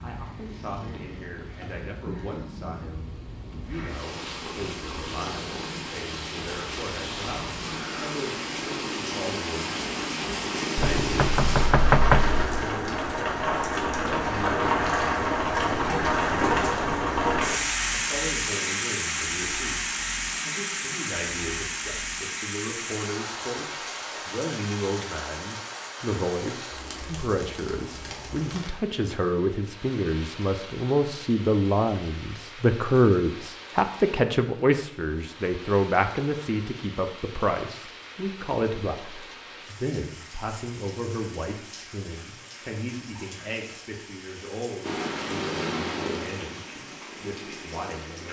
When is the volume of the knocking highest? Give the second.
12 s.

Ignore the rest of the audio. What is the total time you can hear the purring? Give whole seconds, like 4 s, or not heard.
16 s.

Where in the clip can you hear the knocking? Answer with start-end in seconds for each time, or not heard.
10.8-12.4.